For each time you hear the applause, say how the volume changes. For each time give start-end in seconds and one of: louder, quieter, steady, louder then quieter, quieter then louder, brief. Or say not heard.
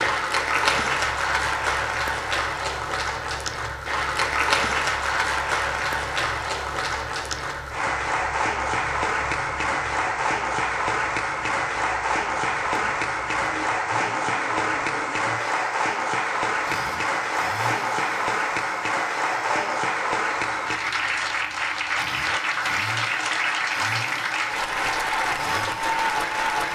0.0-26.6 steady.